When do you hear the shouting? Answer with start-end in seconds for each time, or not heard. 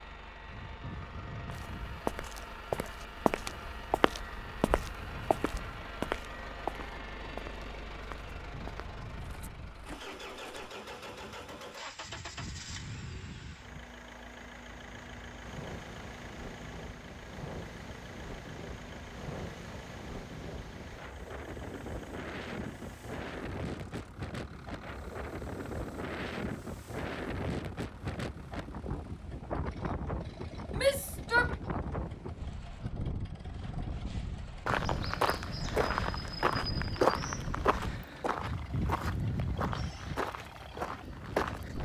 30.8-31.6.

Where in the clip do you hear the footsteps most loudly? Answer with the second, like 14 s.
37 s.